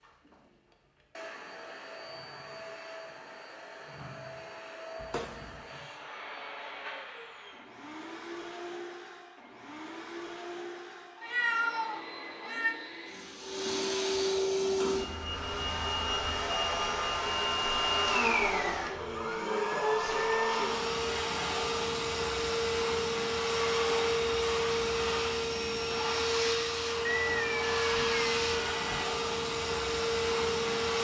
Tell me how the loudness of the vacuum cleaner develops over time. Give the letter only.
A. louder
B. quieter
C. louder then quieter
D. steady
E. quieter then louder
A.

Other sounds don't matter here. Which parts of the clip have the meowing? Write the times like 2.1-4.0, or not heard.
5.0-5.6, 11.2-12.8, 27.1-29.1.